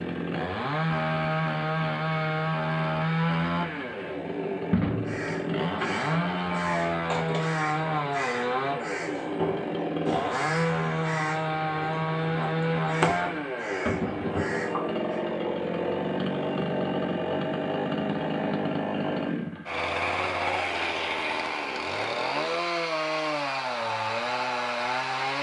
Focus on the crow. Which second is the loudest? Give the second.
13 s.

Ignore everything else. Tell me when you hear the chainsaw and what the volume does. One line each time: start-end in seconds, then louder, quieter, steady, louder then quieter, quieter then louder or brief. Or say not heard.
0.0-25.3 steady.